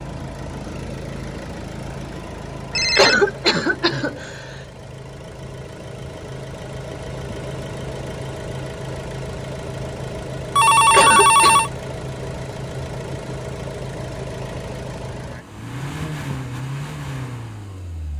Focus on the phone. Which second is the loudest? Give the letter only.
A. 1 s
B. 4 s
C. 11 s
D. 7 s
C.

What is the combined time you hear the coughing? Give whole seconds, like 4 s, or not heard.
2 s.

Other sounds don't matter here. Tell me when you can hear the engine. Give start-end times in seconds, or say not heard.
0.0-18.1.